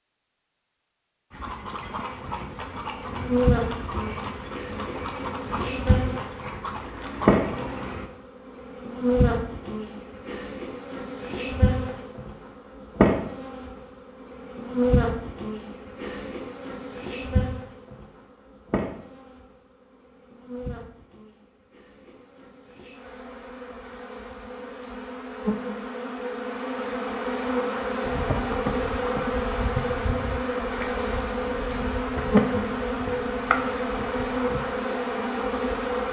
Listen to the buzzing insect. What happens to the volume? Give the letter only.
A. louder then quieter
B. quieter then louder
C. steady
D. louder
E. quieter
B.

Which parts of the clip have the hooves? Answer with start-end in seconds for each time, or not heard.
1.3-8.1, 28.1-34.8.